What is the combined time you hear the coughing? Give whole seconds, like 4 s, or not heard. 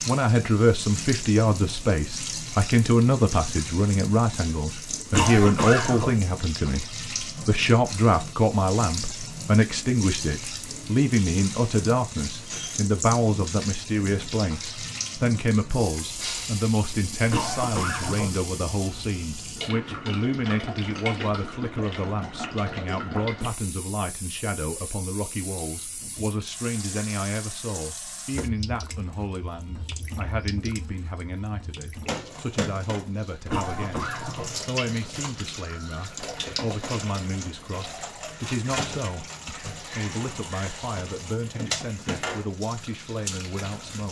3 s.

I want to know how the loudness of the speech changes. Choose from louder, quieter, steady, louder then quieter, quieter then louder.
quieter.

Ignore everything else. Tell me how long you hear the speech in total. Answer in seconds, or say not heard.
44 s.